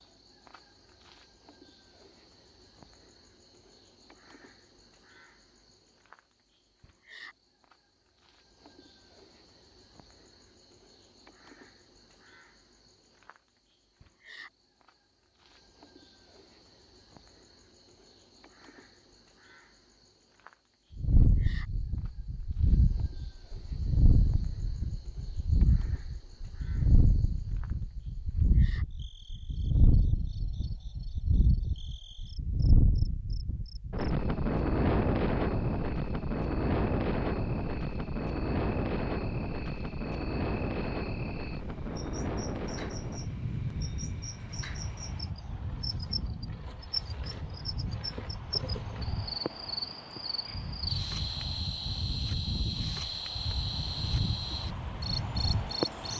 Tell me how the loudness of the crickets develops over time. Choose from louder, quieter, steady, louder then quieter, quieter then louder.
louder.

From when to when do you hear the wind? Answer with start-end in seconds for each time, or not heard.
20.9-56.1.